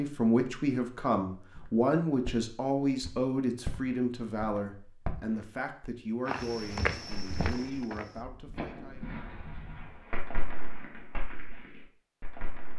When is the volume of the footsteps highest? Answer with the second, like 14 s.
7 s.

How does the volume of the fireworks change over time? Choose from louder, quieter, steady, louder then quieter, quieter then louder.
louder then quieter.